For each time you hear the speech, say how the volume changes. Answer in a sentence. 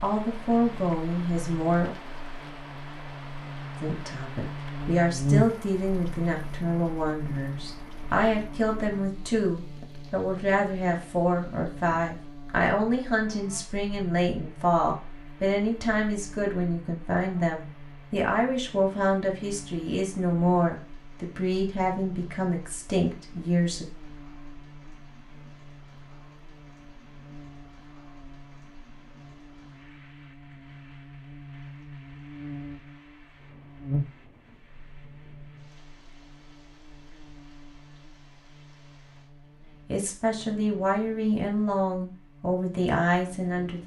The speech can be heard briefly from 0.0 to 1.9 s; from 3.8 to 23.9 s, at a steady volume; and from 39.8 to 43.8 s, at a steady volume.